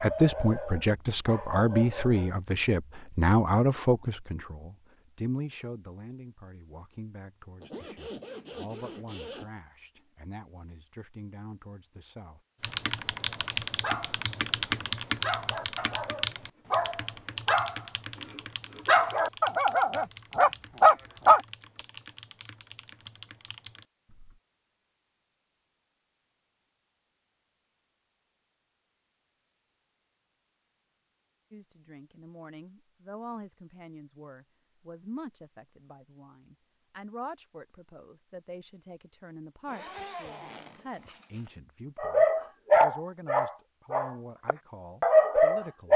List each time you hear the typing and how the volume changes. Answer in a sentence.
You can hear the typing from 12.6 to 24.4 s, getting quieter.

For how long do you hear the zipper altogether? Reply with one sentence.
You can hear the zipper for 4 seconds altogether.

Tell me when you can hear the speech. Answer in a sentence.
You can hear the speech from 0.0 to 12.4 s and from 31.5 to 45.9 s.